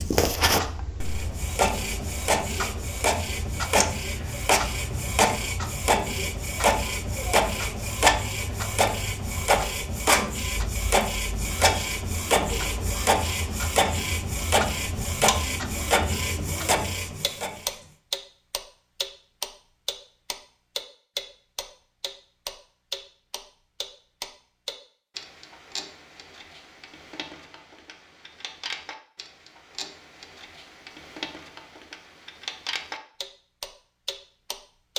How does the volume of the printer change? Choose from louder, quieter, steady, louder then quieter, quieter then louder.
steady.